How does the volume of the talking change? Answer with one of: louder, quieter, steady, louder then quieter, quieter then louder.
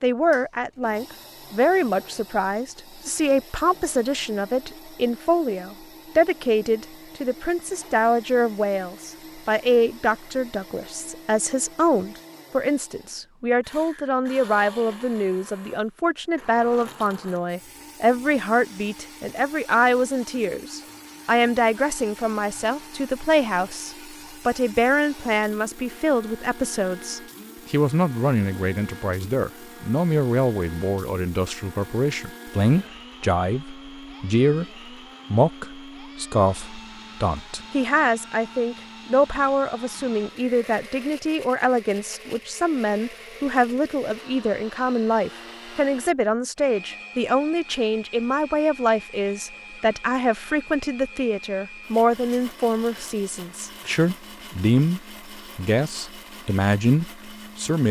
steady.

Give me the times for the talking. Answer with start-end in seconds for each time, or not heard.
0.0-34.6, 35.3-57.8.